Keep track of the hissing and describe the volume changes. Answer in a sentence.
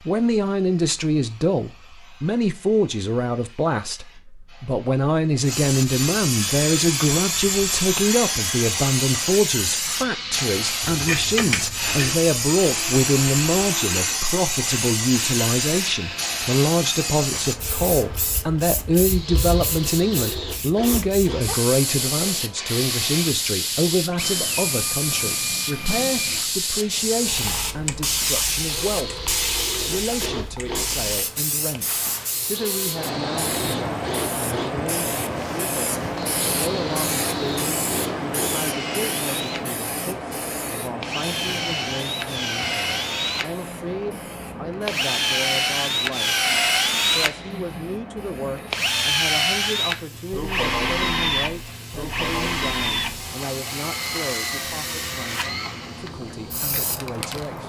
The volume of the hissing goes down.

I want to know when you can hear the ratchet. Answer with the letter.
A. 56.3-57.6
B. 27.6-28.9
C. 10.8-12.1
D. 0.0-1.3
C.